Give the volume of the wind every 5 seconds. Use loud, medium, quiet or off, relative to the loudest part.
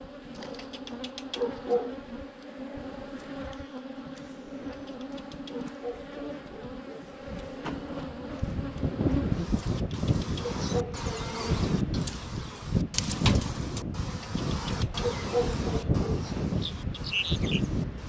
off, loud, loud, loud.